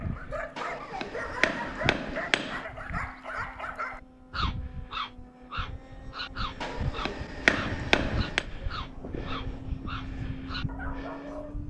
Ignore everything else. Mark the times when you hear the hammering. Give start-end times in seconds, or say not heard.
0.6-2.6, 6.6-8.4.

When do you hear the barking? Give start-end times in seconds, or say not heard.
0.0-11.6.